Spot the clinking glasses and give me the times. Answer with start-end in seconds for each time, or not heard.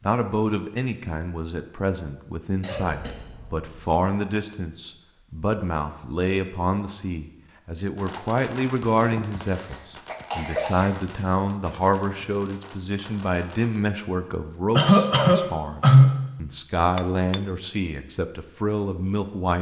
16.9-17.4.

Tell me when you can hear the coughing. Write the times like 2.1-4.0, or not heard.
2.6-3.9, 9.6-10.9, 14.8-16.2.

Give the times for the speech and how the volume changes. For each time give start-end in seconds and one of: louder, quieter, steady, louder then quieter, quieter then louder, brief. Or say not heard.
0.0-19.5 steady.